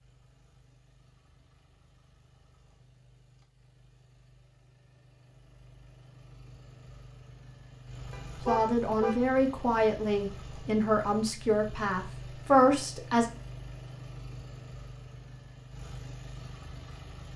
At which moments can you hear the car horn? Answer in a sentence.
You can hear the car horn from 8.1 to 9.2 s.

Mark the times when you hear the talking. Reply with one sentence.
You can hear the talking from 8.4 to 13.3 s.